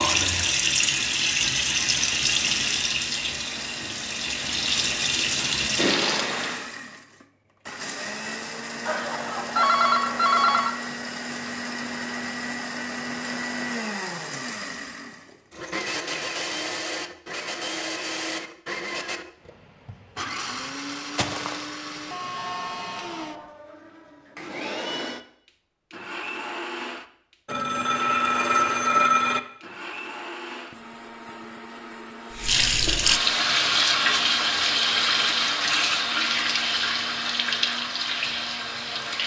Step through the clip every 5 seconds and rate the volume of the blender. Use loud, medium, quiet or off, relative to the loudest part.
medium, loud, loud, loud, loud, loud, medium, medium.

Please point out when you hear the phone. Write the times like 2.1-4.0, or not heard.
8.8-10.7, 21.1-21.6, 22.4-23.4, 27.4-29.4.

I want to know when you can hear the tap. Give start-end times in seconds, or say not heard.
0.0-6.7, 32.3-39.2.